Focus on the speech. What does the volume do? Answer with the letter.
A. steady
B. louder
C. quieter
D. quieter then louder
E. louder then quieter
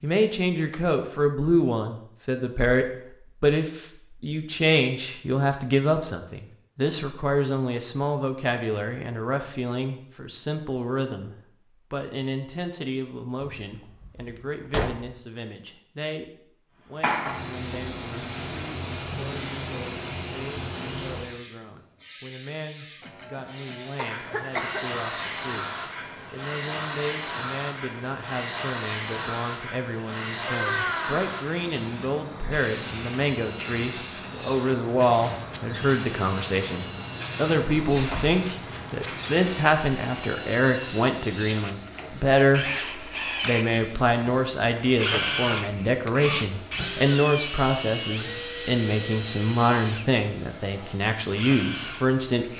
D.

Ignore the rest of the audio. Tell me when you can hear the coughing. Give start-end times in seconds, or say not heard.
23.0-24.9.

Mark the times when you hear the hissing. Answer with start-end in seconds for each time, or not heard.
16.9-52.5.